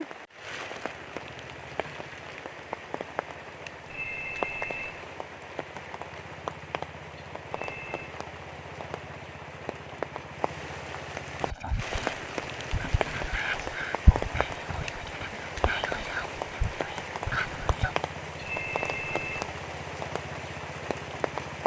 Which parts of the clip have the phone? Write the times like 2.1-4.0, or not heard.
3.9-5.0, 7.5-8.0, 18.4-19.4.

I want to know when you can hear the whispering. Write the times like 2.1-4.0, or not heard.
11.4-17.9.